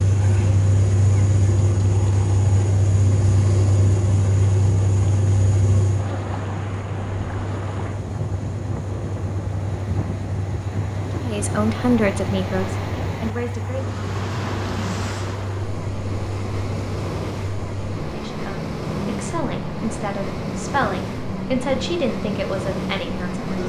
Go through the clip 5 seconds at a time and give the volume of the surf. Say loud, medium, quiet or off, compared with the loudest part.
medium, loud, loud, loud, loud.